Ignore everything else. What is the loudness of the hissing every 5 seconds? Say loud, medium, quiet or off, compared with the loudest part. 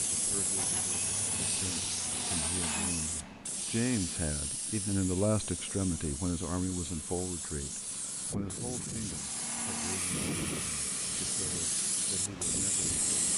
loud, medium, loud.